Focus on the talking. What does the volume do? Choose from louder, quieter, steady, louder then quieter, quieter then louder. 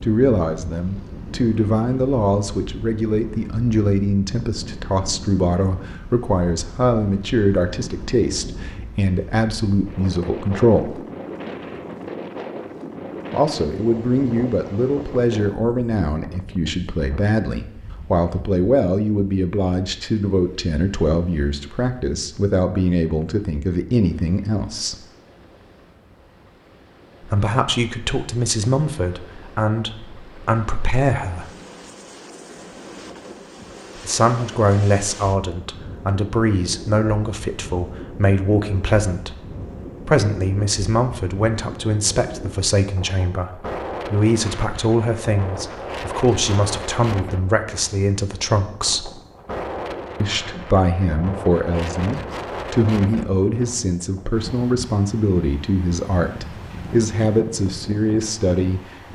steady.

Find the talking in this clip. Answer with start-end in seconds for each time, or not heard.
0.0-10.9, 13.3-25.0, 27.2-31.5, 34.0-39.4, 40.0-49.1, 50.2-59.1.